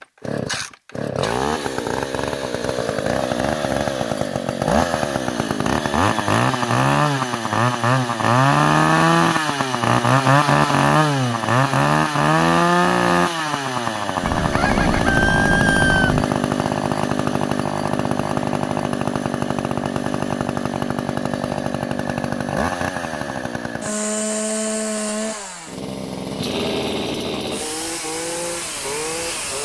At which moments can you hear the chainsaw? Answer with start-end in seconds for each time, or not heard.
0.0-29.5.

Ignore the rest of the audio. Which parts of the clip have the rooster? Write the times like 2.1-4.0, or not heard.
14.2-16.2.